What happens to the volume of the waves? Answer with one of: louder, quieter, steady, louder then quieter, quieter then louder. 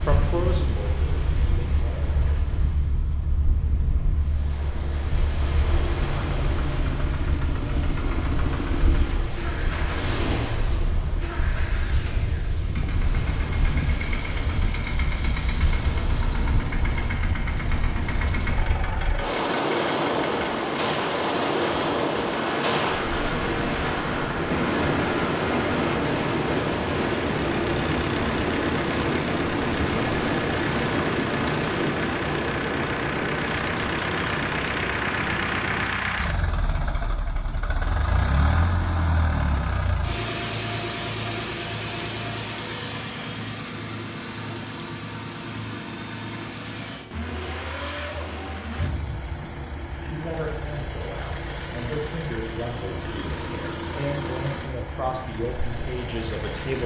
louder.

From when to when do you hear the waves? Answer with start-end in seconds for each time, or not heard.
0.0-36.0.